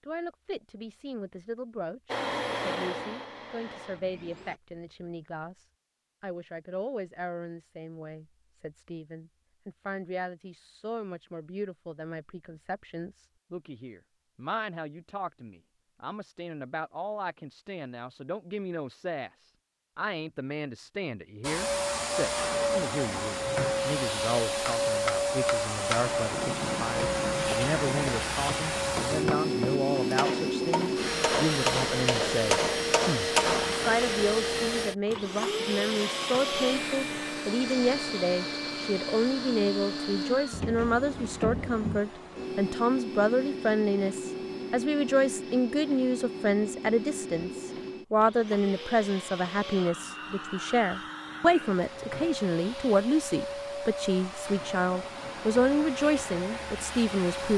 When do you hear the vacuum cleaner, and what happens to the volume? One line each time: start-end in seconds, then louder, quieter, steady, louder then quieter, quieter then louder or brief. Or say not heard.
2.0-4.6 brief
21.4-57.5 quieter.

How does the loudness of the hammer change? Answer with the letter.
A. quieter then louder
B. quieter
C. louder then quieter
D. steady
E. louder
E.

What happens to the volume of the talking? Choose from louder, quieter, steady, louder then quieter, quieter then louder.
louder.